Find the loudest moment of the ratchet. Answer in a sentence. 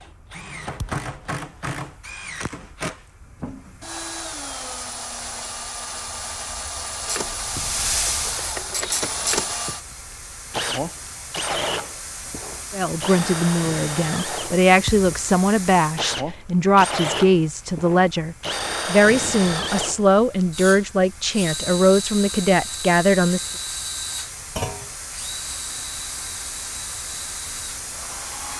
The loudest moment of the ratchet is at 9 seconds.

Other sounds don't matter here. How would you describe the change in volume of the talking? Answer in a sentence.
The loudness of the talking stays about the same.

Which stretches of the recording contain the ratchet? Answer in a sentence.
You can hear the ratchet from 7.0 to 9.6 s.